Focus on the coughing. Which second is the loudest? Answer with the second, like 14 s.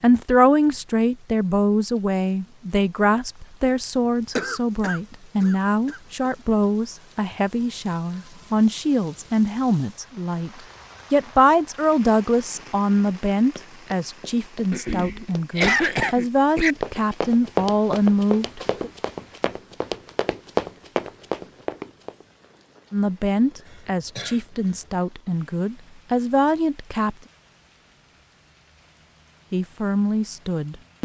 16 s.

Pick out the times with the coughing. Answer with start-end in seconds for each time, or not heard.
4.3-6.3, 14.7-16.8, 23.7-24.4.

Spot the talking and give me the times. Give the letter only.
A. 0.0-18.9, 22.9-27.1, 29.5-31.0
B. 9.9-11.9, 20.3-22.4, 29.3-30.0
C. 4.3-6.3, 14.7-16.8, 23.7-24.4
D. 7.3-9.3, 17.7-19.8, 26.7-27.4
A.